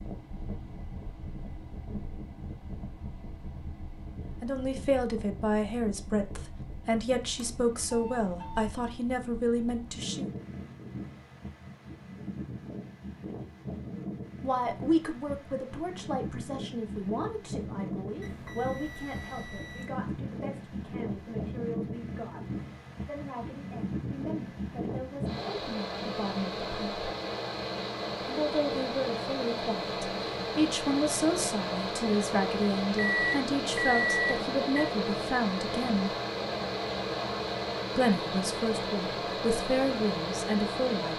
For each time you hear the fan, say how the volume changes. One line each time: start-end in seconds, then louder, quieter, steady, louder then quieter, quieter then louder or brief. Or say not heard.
0.0-41.1 louder.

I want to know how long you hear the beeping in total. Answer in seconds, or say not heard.
5 s.